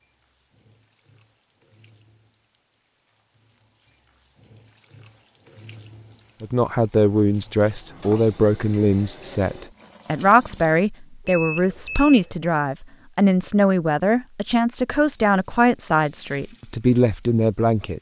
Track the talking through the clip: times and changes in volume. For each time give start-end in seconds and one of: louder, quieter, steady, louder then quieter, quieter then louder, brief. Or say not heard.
6.4-17.9 steady.